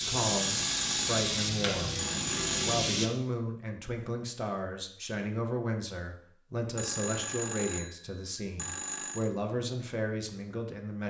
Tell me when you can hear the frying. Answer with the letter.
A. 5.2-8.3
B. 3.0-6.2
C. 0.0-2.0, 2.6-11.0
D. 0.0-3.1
D.